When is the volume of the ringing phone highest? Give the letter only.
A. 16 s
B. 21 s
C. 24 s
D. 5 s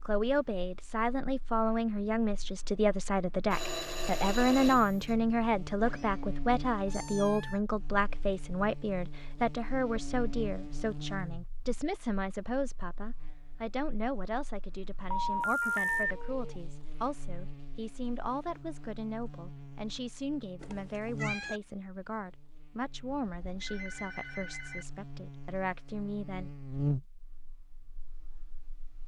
A.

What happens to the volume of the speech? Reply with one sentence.
The volume of the speech goes down.